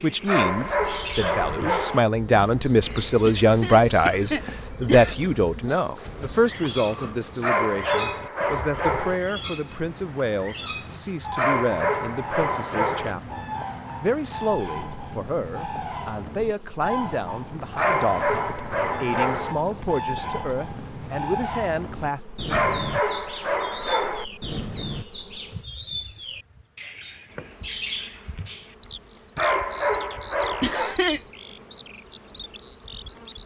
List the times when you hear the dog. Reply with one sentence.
The dog can be heard from 0.2 to 2.0 s, from 7.4 to 9.2 s, from 11.3 to 13.2 s, from 17.8 to 19.6 s, from 22.5 to 24.2 s and from 29.4 to 31.0 s.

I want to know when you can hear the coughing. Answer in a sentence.
The coughing can be heard from 3.2 to 5.2 s and from 30.6 to 31.2 s.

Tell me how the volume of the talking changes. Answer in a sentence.
The volume of the talking goes down.